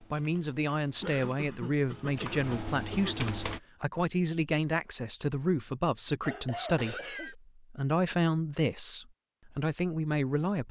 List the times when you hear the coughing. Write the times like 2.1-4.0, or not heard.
1.0-3.1, 6.2-7.3.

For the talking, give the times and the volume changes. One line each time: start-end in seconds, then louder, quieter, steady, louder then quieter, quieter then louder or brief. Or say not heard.
0.0-10.6 steady.